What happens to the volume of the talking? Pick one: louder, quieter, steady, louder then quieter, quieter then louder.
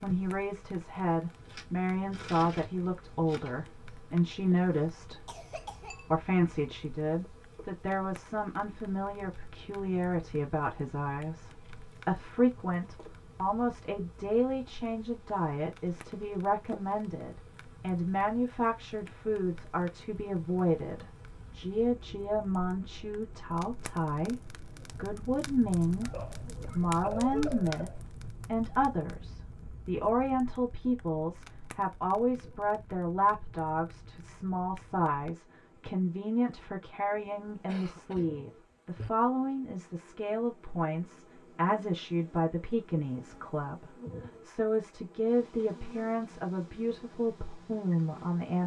steady.